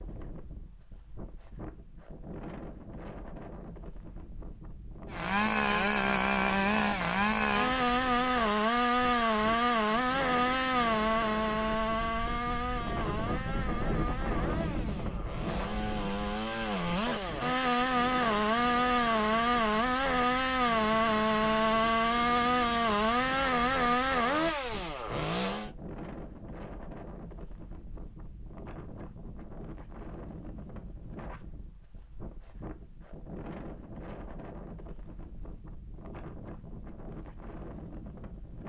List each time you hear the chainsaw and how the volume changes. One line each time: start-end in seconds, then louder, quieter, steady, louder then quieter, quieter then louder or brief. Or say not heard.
5.1-25.7 quieter then louder.